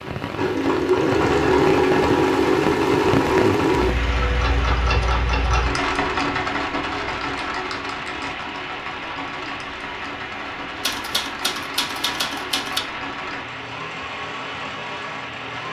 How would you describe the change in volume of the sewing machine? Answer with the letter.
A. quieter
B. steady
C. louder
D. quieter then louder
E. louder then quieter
A.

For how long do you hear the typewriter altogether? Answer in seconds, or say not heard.
2 s.